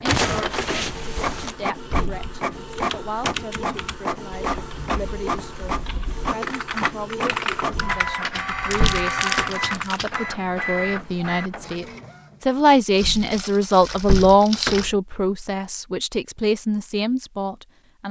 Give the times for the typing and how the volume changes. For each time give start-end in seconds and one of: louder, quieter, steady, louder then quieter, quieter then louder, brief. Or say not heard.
2.0-10.2 quieter then louder.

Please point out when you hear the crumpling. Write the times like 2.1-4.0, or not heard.
0.1-1.6, 8.4-10.0, 12.9-14.8.